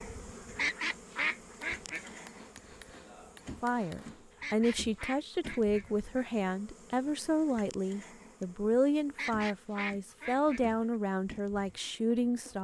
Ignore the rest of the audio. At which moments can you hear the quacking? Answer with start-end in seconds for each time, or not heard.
0.6-2.1, 4.3-6.1, 9.2-10.9.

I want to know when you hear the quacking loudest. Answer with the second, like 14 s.
1 s.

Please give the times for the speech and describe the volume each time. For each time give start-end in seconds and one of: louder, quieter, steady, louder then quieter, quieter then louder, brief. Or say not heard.
3.6-12.5 steady.